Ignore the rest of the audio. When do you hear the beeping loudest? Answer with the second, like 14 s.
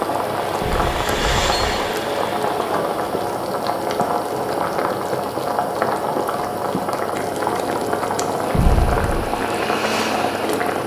9 s.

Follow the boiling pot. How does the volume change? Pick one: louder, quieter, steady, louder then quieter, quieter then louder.
steady.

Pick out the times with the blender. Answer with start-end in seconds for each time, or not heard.
0.0-3.0, 8.6-10.8.